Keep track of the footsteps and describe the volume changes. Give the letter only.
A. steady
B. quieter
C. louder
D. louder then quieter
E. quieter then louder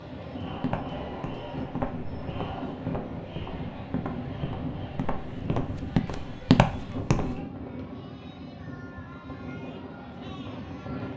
C.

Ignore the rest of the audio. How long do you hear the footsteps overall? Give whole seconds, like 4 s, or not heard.
7 s.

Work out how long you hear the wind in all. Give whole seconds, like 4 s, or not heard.
11 s.